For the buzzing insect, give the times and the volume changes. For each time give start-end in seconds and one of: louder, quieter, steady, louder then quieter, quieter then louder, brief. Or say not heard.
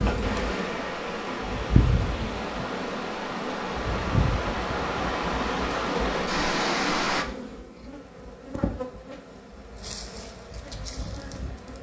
0.0-11.7 quieter.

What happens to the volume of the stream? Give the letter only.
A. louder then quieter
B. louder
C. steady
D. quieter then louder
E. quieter
B.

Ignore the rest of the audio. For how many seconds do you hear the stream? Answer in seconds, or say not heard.
7 s.